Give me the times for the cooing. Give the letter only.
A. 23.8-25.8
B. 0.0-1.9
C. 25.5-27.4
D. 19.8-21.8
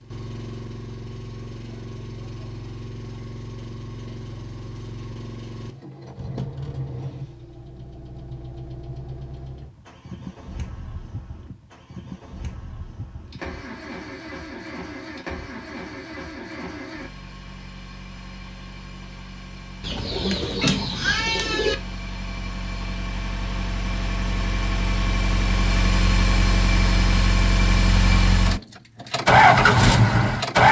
D.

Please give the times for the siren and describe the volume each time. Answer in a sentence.
The siren can't be heard in this clip.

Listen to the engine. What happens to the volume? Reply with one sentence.
The volume of the engine goes up.